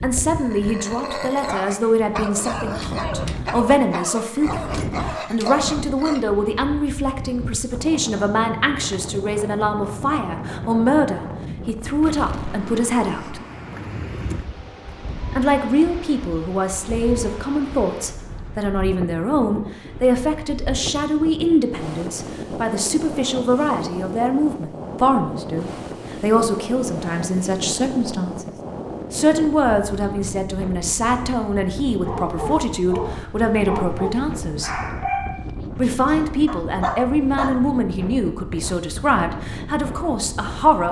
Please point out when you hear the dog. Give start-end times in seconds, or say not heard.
0.3-6.2, 32.0-37.6.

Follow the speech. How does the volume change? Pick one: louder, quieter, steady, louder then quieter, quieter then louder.
steady.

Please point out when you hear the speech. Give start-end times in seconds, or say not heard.
0.0-13.4, 15.3-28.5, 29.1-34.7, 35.8-40.8.